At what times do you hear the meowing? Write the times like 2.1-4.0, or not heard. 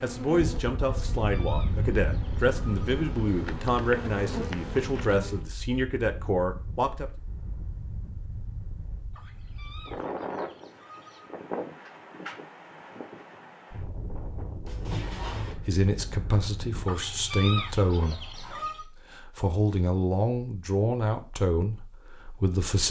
14.7-15.6.